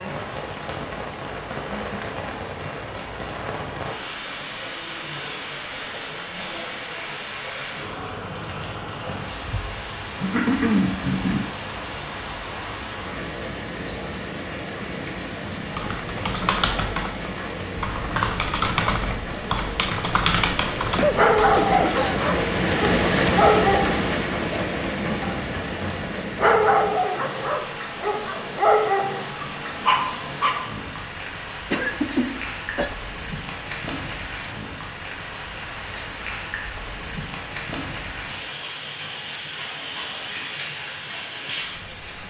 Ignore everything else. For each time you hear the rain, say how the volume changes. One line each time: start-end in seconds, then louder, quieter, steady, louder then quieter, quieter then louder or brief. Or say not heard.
0.0-42.2 louder then quieter.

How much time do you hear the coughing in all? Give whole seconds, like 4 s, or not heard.
4 s.